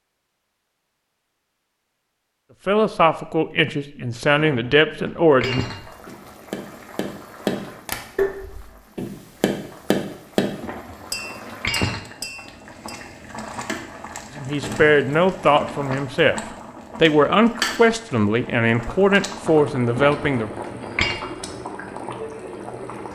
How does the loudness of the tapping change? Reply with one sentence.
The volume of the tapping goes down.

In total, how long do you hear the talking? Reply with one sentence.
You can hear the talking for 9 seconds altogether.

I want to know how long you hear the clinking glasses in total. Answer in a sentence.
You can hear the clinking glasses for 4 seconds altogether.